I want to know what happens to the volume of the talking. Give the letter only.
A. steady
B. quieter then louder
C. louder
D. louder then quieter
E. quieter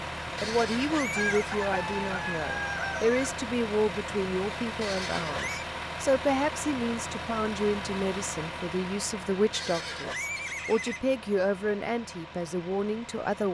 A.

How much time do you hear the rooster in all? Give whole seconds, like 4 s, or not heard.
2 s.